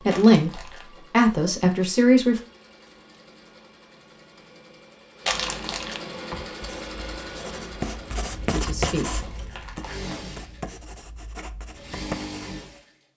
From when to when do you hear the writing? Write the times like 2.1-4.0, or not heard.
6.1-12.7.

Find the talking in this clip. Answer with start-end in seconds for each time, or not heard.
0.1-2.4, 8.4-9.2.